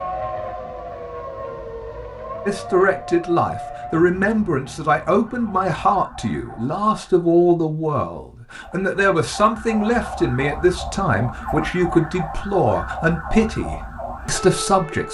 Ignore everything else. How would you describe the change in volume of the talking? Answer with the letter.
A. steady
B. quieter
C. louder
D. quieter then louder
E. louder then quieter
A.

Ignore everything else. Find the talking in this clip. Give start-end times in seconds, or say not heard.
2.5-15.0.